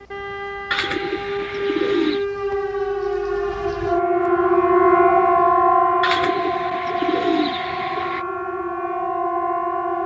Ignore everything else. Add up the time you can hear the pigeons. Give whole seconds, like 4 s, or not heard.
4 s.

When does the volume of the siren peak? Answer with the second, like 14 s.
5 s.